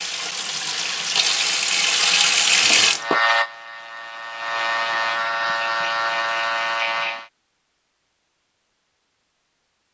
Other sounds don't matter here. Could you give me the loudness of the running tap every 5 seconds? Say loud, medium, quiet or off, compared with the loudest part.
loud, off.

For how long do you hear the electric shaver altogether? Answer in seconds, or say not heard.
4 s.